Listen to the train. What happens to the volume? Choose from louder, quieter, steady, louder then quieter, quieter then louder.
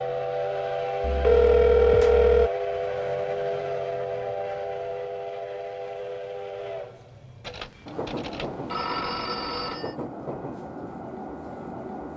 quieter.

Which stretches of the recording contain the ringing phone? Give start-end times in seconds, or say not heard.
1.0-2.5, 7.4-9.9.